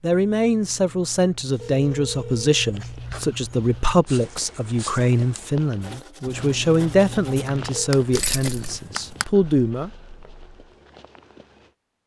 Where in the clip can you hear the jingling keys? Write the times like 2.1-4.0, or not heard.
8.1-8.8.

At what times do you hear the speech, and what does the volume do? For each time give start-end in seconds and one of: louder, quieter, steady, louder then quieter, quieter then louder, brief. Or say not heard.
0.0-9.9 steady.